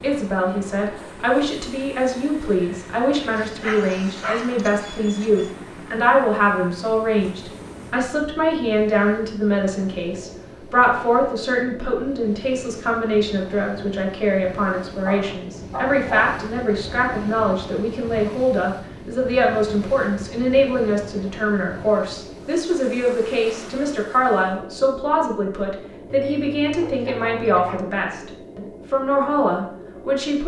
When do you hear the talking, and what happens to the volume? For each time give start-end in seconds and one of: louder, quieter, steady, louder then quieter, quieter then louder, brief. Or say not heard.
0.0-30.4 steady.